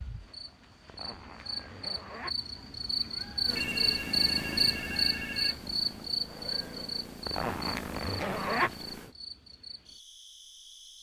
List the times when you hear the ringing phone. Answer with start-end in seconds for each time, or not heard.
3.5-5.5.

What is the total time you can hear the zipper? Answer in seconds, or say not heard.
3 s.